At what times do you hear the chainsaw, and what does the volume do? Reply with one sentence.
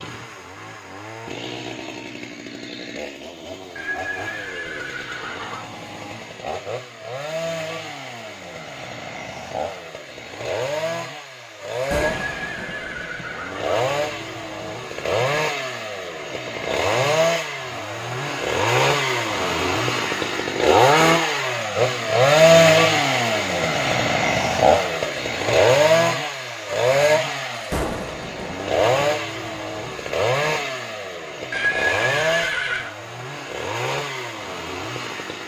You can hear the chainsaw from 0.0 to 35.4 s, getting louder then quieter.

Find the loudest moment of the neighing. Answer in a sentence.
The volume of the neighing peaks at 32 seconds.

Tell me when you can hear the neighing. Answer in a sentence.
You can hear the neighing from 3.8 to 5.7 s, from 12.2 to 13.8 s and from 31.5 to 33.0 s.